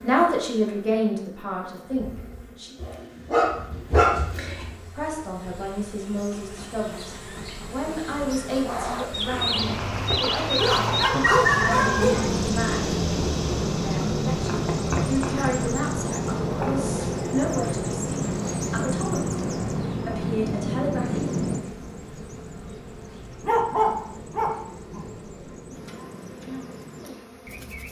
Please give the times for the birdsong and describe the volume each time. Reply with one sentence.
You can hear the birdsong from 8.7 to 27.8 s, getting quieter.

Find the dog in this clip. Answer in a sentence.
You can hear the dog from 2.8 to 4.8 s, from 10.6 to 12.3 s and from 23.4 to 25.1 s.